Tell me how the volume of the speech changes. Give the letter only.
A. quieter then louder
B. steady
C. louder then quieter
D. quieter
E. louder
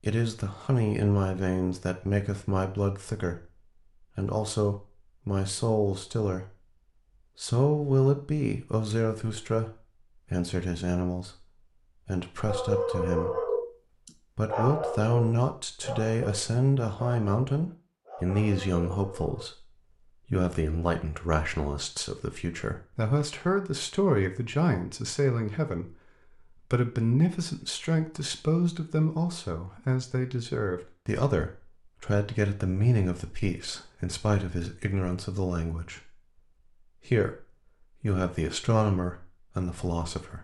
B.